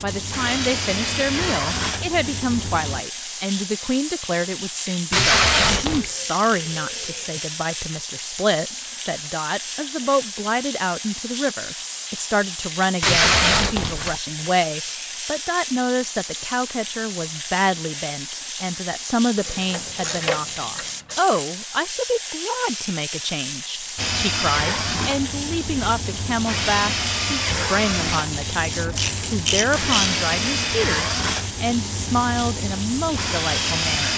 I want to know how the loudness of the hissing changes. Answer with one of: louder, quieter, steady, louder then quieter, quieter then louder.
steady.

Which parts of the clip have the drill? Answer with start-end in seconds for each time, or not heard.
0.0-3.0, 23.9-34.1.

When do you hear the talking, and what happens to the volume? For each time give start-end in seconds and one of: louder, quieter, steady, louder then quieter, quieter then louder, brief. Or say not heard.
0.0-34.1 steady.